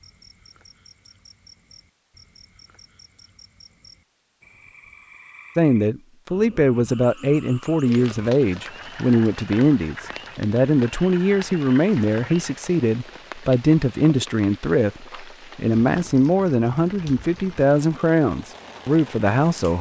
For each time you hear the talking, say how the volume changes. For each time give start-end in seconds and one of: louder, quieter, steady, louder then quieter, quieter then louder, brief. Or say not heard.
5.5-19.7 steady.